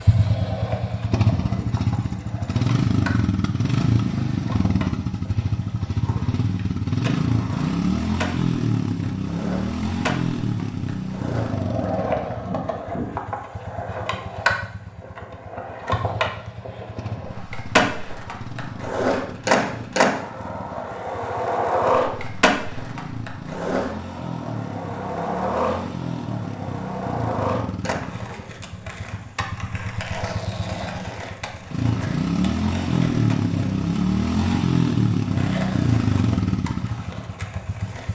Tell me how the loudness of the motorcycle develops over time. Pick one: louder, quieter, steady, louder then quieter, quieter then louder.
quieter then louder.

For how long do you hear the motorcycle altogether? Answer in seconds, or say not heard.
38 s.